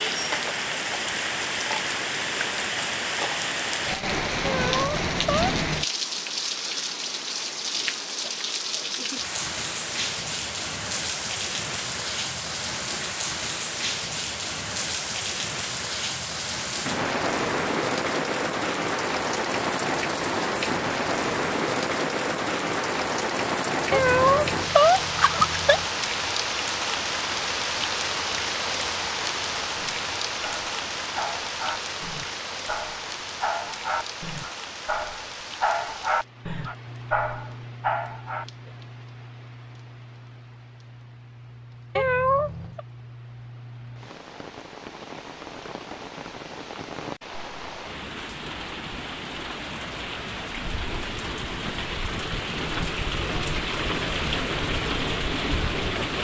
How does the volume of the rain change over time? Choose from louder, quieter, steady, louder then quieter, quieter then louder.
quieter then louder.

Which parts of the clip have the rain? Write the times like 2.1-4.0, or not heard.
0.0-56.1.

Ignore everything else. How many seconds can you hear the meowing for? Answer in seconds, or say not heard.
4 s.